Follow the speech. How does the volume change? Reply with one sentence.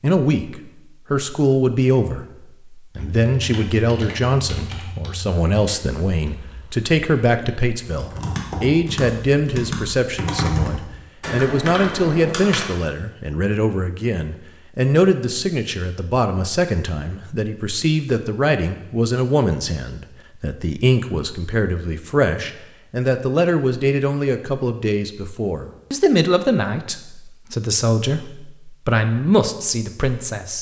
The loudness of the speech stays about the same.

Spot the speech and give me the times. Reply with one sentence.
You can hear the speech from 0.0 to 30.5 s.